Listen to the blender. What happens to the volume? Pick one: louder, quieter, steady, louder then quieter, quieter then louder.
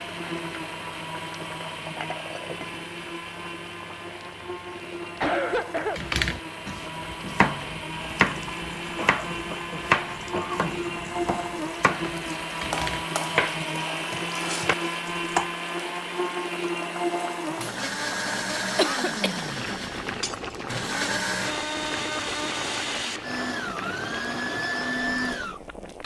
louder.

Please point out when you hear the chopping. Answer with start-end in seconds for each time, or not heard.
6.0-15.5.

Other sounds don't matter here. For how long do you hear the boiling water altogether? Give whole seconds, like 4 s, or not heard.
26 s.